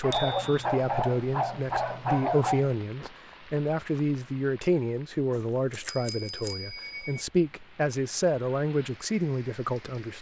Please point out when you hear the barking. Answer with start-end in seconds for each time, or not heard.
0.0-2.8.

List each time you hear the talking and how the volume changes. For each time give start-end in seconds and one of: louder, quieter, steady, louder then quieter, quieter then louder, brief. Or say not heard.
0.0-10.1 steady.